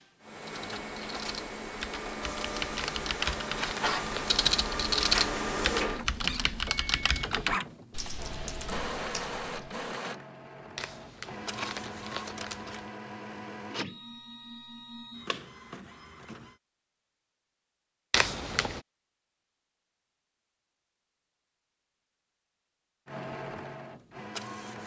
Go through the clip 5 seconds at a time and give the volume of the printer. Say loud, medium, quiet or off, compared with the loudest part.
loud, loud, medium, medium, medium.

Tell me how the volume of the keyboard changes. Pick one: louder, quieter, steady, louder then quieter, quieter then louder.
louder then quieter.